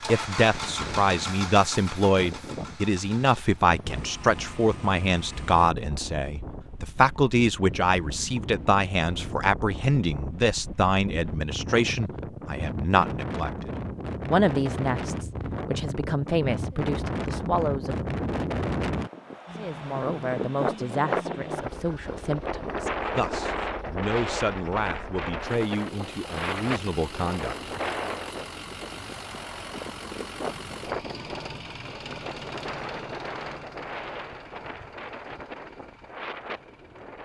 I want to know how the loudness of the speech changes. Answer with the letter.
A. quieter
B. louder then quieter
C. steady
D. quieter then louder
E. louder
A.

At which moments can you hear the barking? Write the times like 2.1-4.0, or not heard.
not heard.